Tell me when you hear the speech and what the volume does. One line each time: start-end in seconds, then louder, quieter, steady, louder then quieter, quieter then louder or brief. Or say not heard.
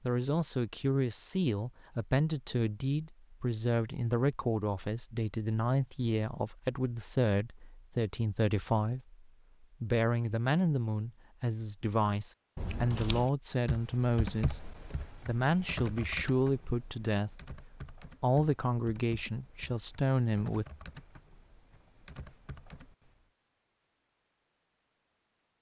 0.0-20.6 steady.